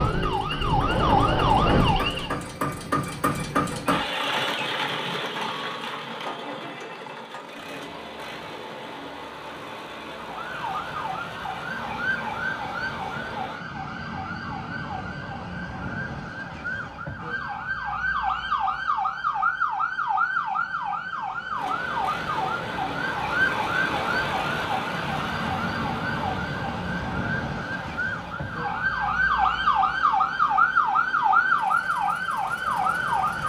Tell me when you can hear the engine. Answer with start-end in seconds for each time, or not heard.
0.0-13.6, 21.6-33.4.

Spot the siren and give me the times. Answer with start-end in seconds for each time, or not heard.
0.0-2.4, 10.2-33.4.